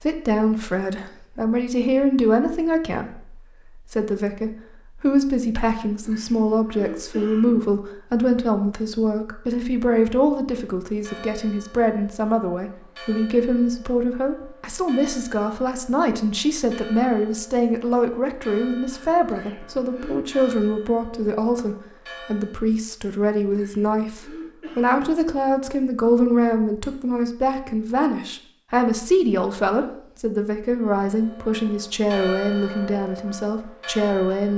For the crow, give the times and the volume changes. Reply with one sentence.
You can't hear the crow here.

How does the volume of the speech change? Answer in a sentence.
The volume of the speech stays about the same.